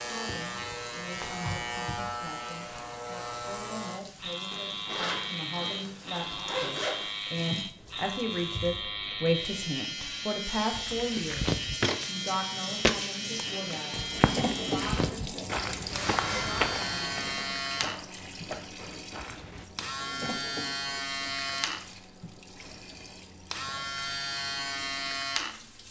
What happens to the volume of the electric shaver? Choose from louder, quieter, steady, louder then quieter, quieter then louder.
steady.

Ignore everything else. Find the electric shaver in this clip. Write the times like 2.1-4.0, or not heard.
0.0-25.8.